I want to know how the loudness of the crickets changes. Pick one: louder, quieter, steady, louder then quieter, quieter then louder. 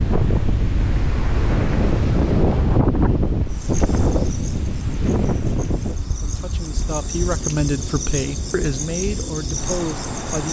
louder.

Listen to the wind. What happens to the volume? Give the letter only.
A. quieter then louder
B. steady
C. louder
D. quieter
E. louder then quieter
D.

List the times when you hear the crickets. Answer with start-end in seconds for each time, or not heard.
3.5-10.4.